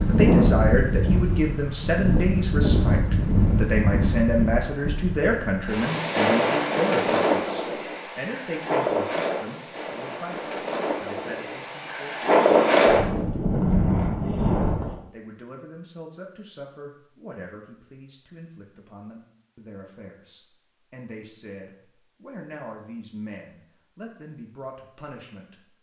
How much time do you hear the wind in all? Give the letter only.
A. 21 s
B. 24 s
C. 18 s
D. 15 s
D.